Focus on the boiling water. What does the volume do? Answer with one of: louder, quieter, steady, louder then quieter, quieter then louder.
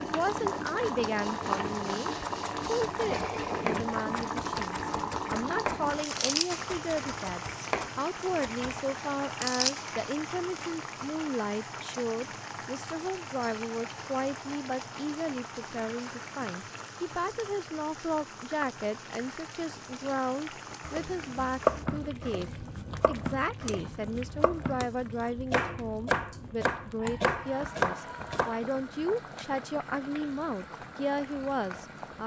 quieter.